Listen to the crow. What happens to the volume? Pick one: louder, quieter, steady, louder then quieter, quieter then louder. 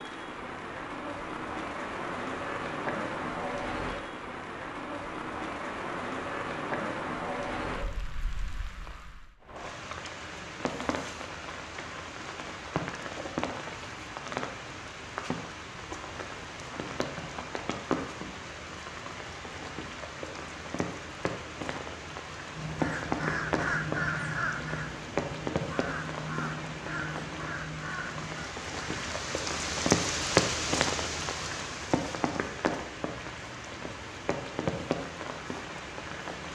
quieter.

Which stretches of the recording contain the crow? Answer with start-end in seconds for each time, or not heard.
22.6-29.3.